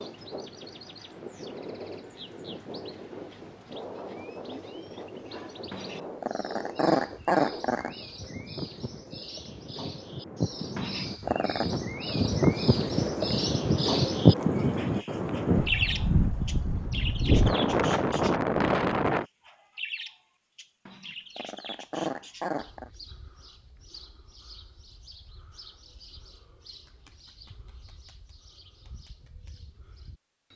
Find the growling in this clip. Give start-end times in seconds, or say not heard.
5.7-7.9, 10.8-11.7, 20.9-22.9.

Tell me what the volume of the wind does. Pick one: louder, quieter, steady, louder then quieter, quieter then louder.
louder.